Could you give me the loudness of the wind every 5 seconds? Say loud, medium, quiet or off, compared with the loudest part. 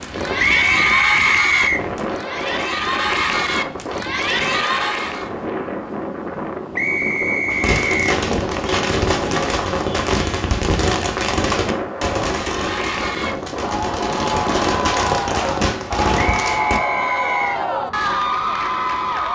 loud, loud, loud, medium.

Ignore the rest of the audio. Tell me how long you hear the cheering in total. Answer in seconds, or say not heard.
12 s.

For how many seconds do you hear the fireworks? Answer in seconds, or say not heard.
9 s.